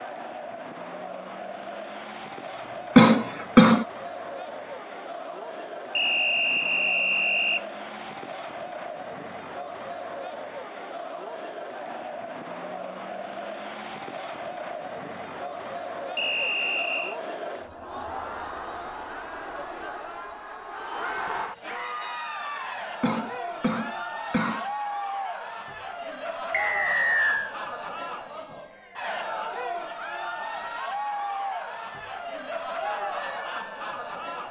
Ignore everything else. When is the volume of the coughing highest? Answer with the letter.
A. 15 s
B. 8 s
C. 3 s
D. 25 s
C.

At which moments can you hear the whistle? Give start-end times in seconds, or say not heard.
6.0-7.7, 16.1-17.1, 26.5-27.6.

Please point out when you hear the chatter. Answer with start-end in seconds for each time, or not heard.
0.0-34.4.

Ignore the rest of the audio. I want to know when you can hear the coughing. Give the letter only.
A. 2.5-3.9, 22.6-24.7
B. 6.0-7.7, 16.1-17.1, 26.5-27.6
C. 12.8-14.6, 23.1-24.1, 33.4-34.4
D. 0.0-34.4
A.